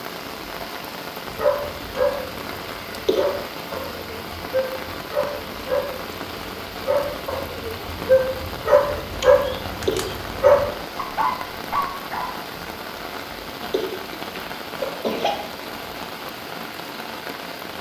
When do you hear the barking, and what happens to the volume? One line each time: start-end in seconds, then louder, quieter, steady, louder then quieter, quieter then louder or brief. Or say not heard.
1.2-12.3 louder.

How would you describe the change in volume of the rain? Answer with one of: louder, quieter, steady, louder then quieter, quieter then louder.
steady.